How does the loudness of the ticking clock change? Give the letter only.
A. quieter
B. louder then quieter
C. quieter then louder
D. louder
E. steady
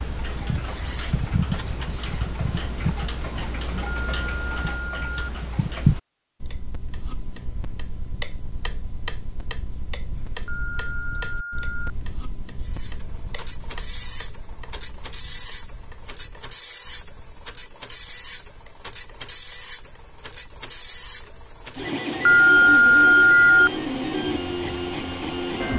A.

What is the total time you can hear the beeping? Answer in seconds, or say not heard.
4 s.